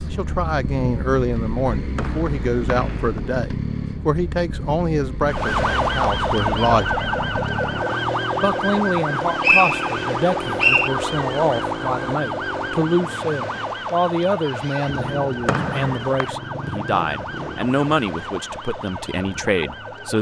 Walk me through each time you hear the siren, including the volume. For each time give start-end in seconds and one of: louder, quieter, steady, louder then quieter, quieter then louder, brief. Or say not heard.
5.2-20.1 quieter.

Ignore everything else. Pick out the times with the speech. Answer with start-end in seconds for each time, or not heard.
0.0-6.9, 8.4-20.1.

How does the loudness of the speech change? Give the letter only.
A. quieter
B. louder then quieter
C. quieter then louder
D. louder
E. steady
E.